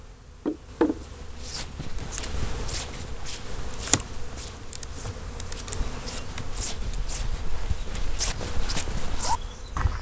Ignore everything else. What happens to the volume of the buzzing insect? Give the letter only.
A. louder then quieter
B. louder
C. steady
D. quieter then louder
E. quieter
E.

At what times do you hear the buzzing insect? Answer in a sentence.
The buzzing insect can be heard from 0.0 to 9.9 s.